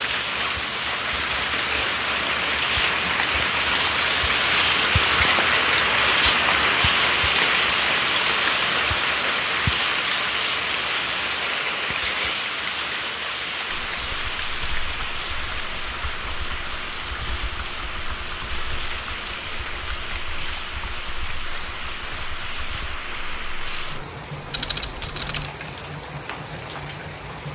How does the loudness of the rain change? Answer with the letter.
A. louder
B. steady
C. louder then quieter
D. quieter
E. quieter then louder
D.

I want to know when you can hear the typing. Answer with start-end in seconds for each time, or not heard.
13.8-25.5.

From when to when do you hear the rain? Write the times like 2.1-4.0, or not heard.
0.0-27.5.